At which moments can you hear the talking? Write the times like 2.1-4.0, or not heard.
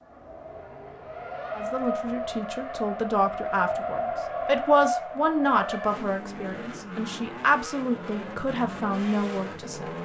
1.6-9.9.